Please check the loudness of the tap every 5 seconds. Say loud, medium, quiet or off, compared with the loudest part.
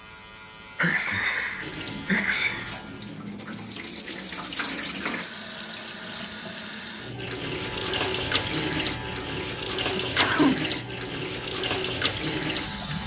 medium, loud, loud.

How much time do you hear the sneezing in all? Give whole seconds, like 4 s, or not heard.
3 s.